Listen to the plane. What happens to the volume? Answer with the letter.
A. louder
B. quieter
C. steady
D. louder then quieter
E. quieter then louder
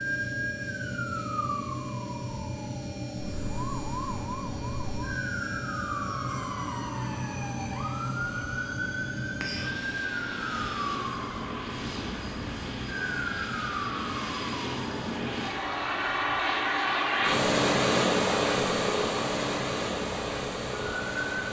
A.